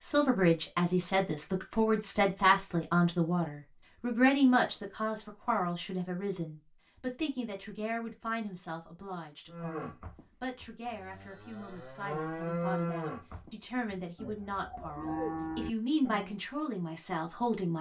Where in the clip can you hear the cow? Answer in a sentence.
The cow can be heard from 9.5 to 16.4 s.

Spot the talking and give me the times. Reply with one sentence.
The talking can be heard from 0.0 to 17.7 s.